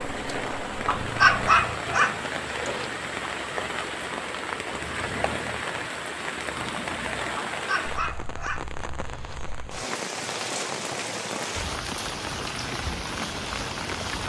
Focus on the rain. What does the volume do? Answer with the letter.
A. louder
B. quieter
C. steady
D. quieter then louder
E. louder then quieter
C.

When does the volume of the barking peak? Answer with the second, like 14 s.
1 s.